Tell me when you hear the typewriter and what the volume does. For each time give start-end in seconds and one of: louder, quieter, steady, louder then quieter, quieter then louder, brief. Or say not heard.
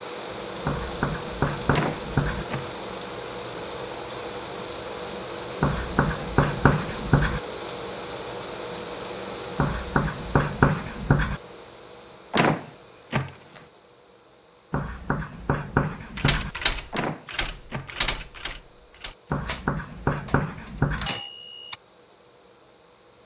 16.1-21.8 quieter then louder.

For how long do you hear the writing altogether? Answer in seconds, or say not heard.
9 s.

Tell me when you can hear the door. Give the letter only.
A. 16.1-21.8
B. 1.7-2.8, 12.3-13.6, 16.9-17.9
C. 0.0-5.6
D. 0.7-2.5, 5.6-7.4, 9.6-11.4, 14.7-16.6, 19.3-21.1
B.